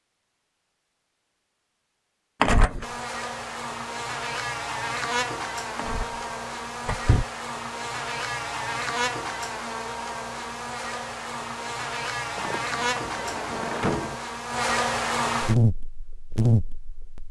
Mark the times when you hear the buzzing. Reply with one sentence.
The buzzing can be heard from 2.8 to 17.2 s.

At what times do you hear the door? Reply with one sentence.
You can hear the door from 2.4 to 2.9 s, from 5.8 to 6.2 s, from 6.8 to 7.2 s and from 12.3 to 14.2 s.